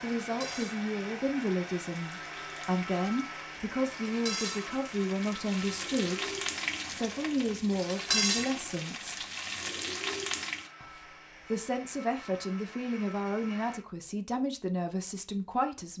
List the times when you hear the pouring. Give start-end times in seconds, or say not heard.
not heard.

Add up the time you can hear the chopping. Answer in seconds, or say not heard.
not heard.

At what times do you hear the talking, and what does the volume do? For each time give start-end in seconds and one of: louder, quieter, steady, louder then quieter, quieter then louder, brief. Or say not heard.
0.0-9.2 steady
10.8-15.9 steady.